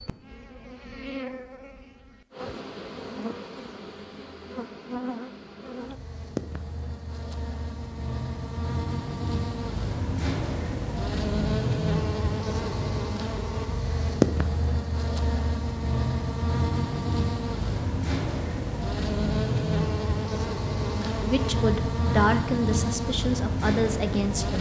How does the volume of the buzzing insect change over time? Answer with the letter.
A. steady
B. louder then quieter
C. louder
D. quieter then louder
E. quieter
C.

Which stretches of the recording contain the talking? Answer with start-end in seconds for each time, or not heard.
21.2-24.5.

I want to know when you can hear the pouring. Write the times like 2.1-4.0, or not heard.
not heard.